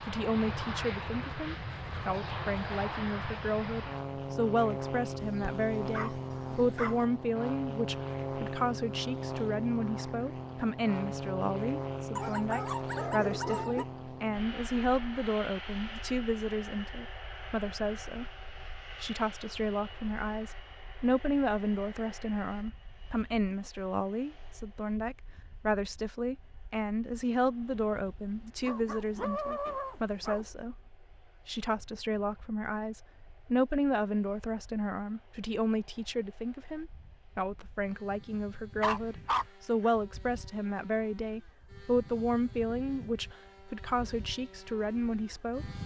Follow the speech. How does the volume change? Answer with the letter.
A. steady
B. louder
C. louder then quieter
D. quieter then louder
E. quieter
A.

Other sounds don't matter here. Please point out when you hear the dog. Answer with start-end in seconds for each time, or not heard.
5.2-7.0, 12.2-13.8, 28.6-30.4, 38.8-39.9.